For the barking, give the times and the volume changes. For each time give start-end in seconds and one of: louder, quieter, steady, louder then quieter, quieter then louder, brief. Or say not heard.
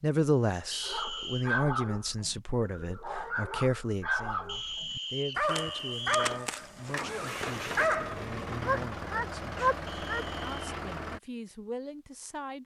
0.8-10.2 louder.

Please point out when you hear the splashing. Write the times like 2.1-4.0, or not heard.
not heard.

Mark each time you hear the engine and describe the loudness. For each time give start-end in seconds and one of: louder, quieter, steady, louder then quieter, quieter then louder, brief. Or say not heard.
6.3-11.2 steady.